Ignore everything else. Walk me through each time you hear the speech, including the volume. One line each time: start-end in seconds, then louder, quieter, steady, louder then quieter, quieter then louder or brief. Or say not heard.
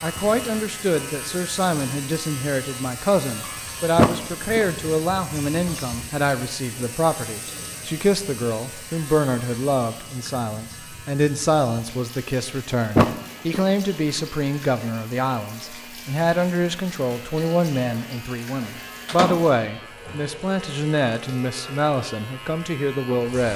0.0-23.5 steady.